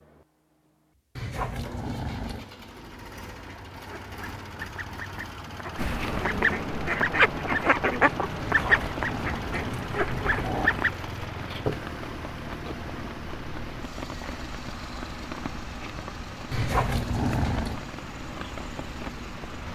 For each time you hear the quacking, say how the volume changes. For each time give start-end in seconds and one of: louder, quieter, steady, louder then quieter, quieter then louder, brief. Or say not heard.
3.3-10.9 louder then quieter.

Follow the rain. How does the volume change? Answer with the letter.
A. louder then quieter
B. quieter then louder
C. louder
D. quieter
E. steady
E.